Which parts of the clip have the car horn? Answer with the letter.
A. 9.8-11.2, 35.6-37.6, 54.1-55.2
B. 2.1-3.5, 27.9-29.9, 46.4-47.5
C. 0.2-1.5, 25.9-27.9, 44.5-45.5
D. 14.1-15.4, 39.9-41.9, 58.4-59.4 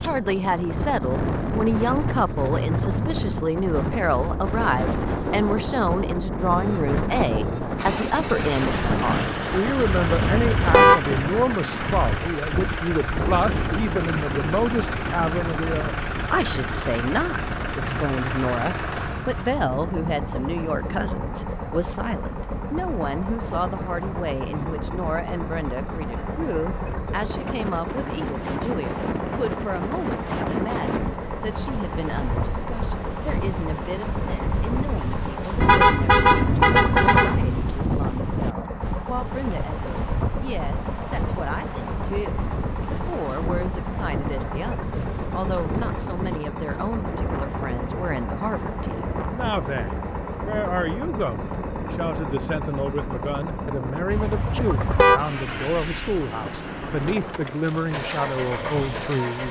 A.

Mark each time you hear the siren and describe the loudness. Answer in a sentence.
The siren can't be heard in this clip.